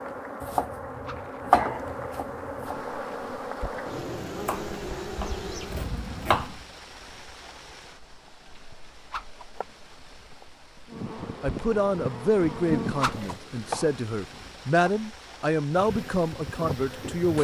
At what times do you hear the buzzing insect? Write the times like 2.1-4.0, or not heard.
0.0-6.6, 10.8-13.4, 15.8-17.4.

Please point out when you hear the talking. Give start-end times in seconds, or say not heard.
11.4-17.4.